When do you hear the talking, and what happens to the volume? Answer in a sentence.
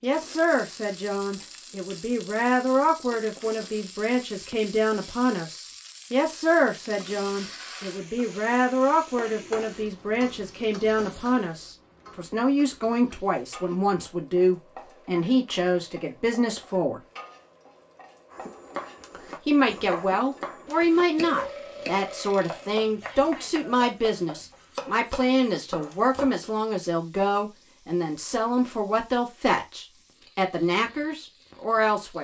The talking can be heard from 0.0 to 17.0 s, at a steady volume; and from 19.4 to 32.2 s, at a steady volume.